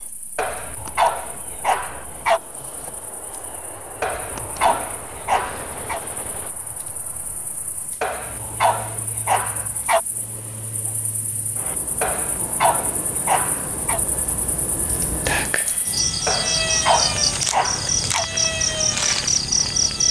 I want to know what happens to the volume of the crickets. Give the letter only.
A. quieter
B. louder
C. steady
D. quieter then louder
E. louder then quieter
B.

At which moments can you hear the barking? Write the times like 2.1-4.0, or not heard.
0.3-2.4, 4.0-6.0, 8.0-10.0, 12.0-14.0, 16.2-18.2.